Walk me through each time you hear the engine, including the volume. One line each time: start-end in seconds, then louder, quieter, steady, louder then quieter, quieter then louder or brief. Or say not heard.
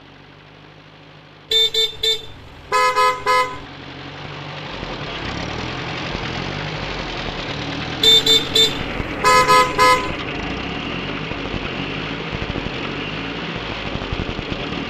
0.0-14.8 louder.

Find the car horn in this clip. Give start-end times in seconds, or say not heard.
1.5-3.6, 8.0-10.2.